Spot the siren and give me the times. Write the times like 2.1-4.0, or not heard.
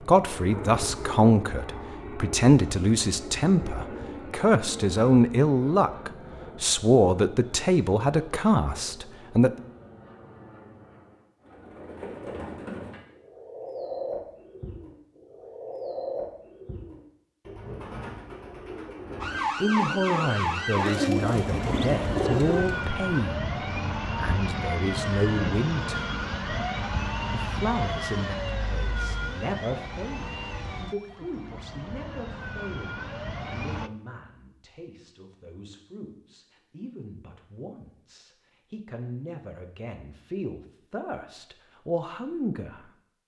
19.2-33.9.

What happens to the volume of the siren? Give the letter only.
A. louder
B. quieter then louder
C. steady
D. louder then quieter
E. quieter
E.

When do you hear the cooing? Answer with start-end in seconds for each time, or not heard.
11.4-22.9.